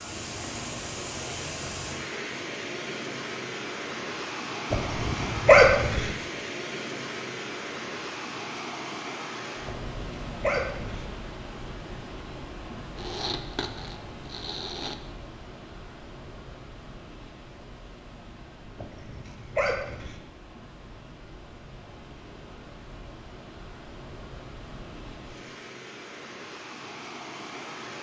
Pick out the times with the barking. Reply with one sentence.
The barking can be heard from 4.7 to 6.1 s, from 9.7 to 11.1 s and from 18.8 to 20.2 s.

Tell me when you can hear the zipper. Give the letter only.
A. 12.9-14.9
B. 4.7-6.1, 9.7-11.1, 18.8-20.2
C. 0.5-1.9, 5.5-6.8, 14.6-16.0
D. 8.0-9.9
A.